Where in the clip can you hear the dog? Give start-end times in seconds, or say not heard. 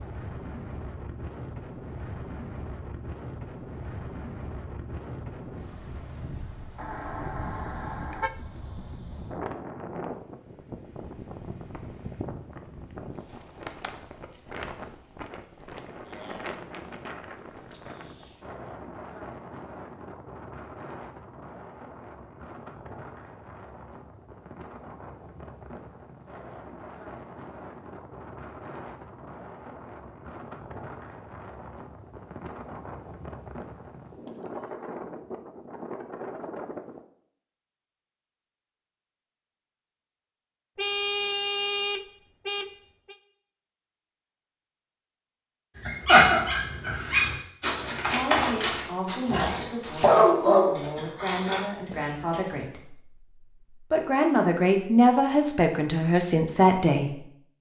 45.8-52.4.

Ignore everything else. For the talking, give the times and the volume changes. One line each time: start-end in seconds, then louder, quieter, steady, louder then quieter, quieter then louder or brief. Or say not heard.
48.1-57.2 louder.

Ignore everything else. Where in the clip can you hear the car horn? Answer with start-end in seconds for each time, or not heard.
6.8-8.3, 40.8-43.1.